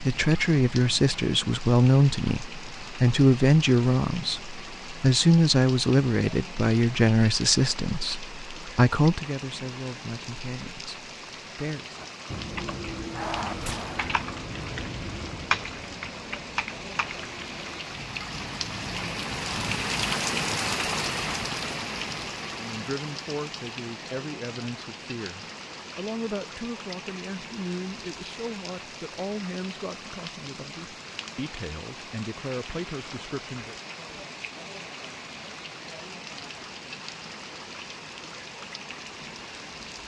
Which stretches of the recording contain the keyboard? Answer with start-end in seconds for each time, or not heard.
11.9-17.9.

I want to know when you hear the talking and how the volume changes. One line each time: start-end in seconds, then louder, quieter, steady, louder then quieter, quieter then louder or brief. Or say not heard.
0.0-12.0 quieter
22.6-33.8 steady.